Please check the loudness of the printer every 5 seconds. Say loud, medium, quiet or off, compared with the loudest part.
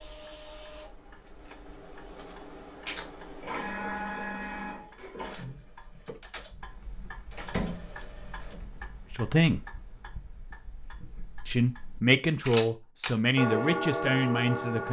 loud, medium, off.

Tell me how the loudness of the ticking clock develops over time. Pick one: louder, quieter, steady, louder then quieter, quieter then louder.
louder.